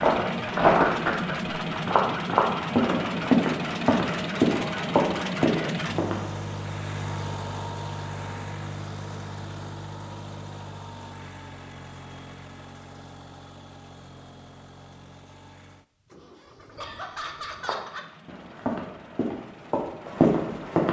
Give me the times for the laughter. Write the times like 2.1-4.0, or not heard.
16.8-18.6.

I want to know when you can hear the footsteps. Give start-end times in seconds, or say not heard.
0.0-6.2, 17.6-20.8.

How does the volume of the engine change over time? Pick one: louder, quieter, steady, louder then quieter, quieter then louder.
quieter.